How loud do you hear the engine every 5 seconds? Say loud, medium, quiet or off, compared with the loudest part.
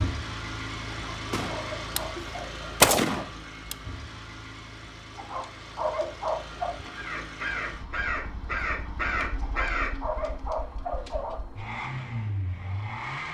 loud, medium, loud.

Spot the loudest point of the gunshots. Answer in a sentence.
The volume of the gunshots peaks at 3 seconds.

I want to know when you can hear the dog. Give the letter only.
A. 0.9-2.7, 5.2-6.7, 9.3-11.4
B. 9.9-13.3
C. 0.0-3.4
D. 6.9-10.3
A.